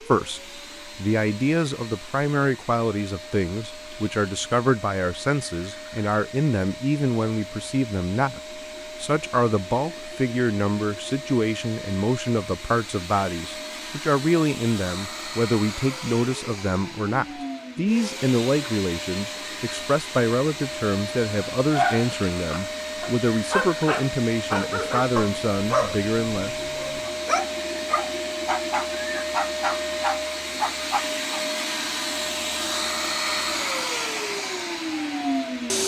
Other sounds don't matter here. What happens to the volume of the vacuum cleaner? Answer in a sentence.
The loudness of the vacuum cleaner goes up.